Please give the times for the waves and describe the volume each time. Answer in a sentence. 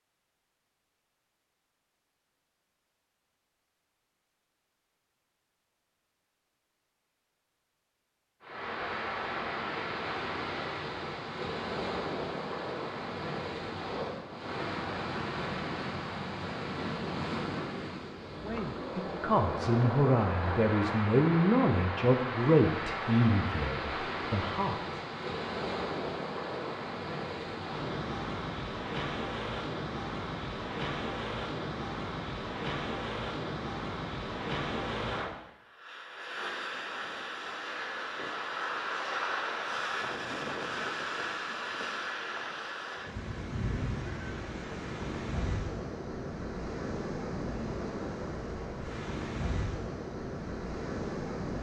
You can hear the waves from 8.4 to 51.5 s, at a steady volume.